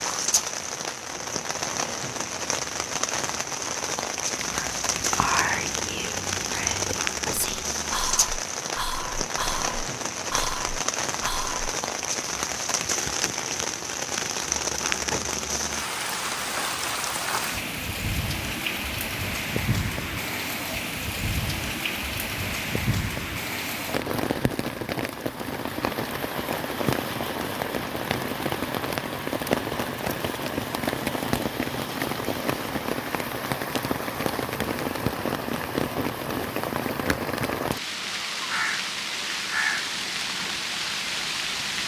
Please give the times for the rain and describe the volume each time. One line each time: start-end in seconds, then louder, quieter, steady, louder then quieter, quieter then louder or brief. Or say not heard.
0.0-41.8 steady.